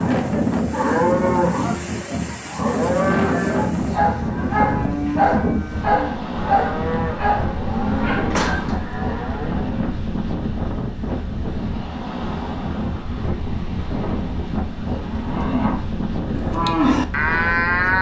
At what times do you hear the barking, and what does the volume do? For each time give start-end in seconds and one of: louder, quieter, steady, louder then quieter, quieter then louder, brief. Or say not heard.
3.5-8.7 quieter.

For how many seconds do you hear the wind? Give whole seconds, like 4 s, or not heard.
18 s.